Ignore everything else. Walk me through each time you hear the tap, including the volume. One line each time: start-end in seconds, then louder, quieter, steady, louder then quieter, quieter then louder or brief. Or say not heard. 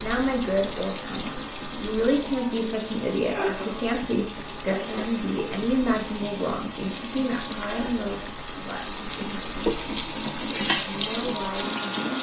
0.0-12.1 louder.